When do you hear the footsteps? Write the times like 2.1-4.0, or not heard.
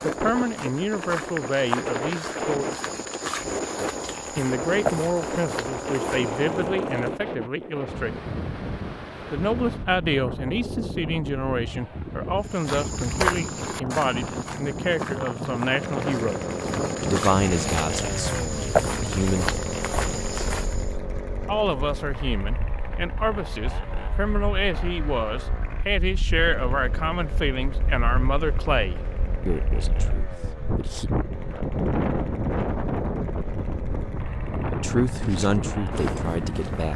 0.0-6.7, 12.4-20.9, 35.0-36.9.